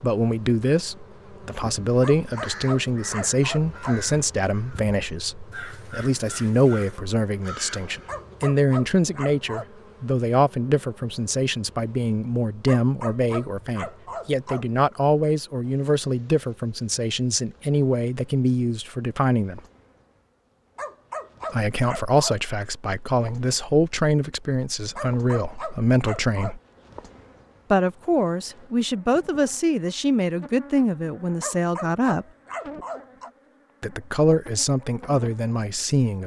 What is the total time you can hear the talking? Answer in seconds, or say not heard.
32 s.